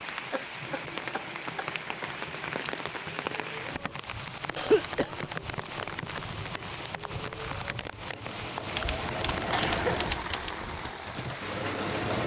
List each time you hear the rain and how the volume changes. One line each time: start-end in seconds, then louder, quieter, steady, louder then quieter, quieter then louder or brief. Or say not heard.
0.0-12.2 steady.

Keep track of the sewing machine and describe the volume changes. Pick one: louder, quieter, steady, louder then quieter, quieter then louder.
louder.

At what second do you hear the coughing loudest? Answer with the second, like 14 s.
5 s.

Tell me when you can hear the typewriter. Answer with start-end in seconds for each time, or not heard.
8.7-10.6.